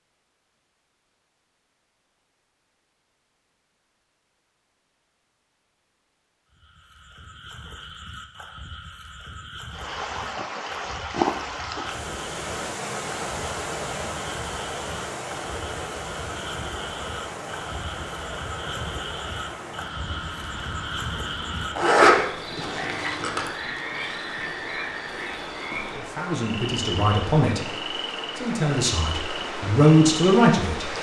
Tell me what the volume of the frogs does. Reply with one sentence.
The volume of the frogs goes up.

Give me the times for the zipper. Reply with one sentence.
The zipper can be heard from 21.8 to 23.5 s.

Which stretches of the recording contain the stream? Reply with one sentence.
You can hear the stream from 9.7 to 30.9 s.